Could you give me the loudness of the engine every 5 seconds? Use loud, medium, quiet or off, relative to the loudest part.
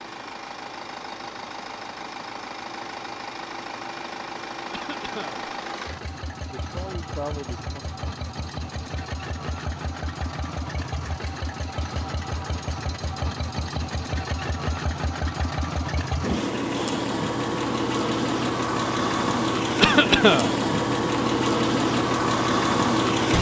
quiet, quiet, medium, loud, loud.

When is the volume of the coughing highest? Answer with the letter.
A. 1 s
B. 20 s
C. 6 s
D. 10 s
B.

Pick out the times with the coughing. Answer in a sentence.
The coughing can be heard from 4.7 to 5.4 s and from 19.8 to 20.5 s.